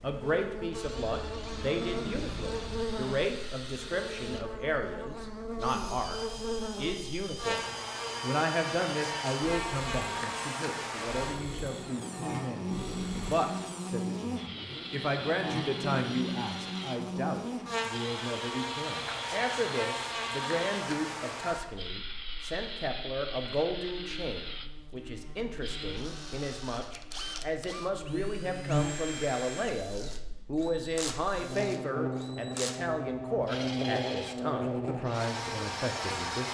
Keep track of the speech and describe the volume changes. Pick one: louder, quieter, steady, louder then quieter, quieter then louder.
steady.